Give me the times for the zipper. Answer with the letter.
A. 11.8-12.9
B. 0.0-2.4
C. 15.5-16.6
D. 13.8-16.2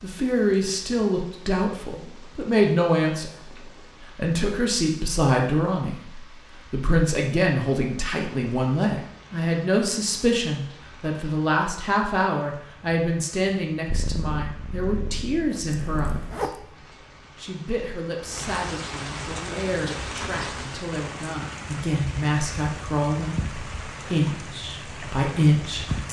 C.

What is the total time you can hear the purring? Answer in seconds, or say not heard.
2 s.